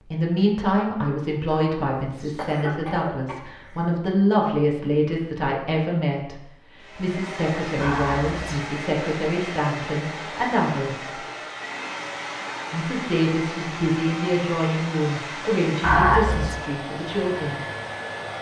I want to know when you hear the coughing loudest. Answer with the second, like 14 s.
16 s.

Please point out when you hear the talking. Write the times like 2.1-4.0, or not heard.
0.0-11.2, 12.7-17.6.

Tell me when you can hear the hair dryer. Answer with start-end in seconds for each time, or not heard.
6.8-18.3.